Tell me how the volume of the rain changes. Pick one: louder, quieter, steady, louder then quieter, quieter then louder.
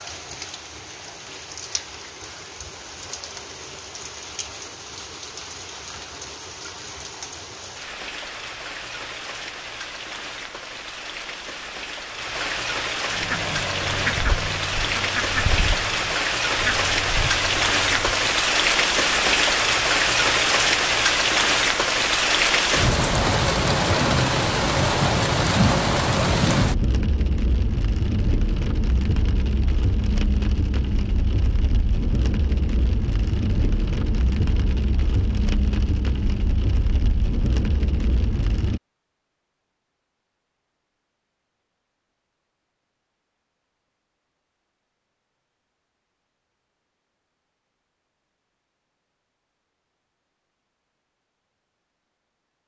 louder then quieter.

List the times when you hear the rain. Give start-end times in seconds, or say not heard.
0.0-38.8.